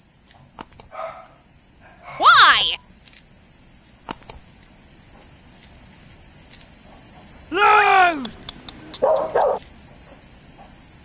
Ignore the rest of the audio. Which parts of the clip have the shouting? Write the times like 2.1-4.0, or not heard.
2.2-2.8, 7.5-8.3.